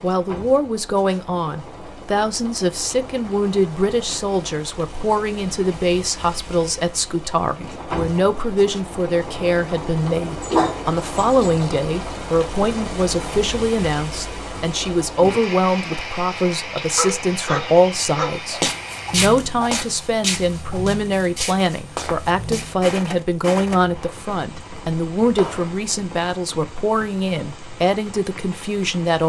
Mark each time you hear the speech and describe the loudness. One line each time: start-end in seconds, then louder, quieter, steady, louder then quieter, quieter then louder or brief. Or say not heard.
0.0-29.2 steady.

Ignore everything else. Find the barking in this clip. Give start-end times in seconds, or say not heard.
10.4-11.7, 16.9-18.4.